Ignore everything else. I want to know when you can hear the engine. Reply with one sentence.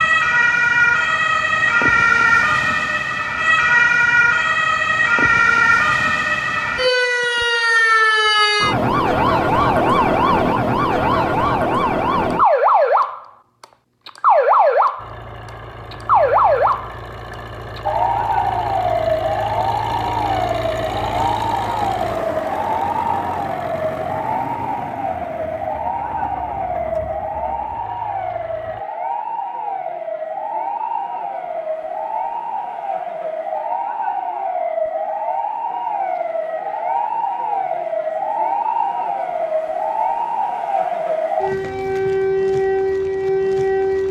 The engine can be heard from 14.9 to 28.9 s.